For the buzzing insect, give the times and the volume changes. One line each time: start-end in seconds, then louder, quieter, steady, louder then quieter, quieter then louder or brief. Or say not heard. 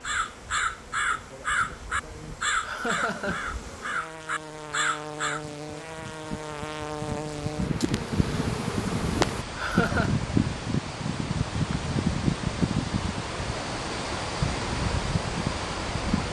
0.0-9.4 louder.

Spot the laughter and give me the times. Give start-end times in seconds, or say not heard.
2.6-3.5, 9.6-10.2.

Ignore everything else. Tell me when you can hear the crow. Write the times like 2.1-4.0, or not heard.
0.0-5.5.